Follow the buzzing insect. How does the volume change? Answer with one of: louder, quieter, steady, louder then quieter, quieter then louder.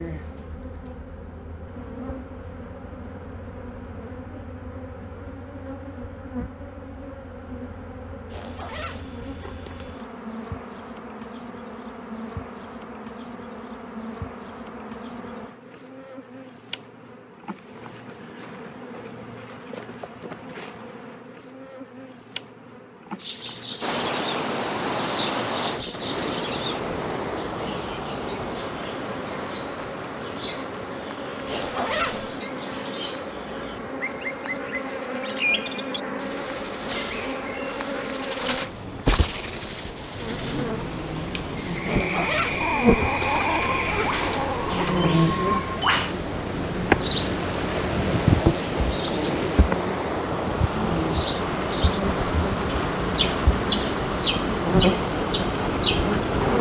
louder.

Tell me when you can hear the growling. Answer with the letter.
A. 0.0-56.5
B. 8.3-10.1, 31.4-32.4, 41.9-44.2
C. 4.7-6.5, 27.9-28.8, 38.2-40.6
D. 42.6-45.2
D.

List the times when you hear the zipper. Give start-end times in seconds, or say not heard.
8.3-10.1, 31.4-32.4, 41.9-44.2.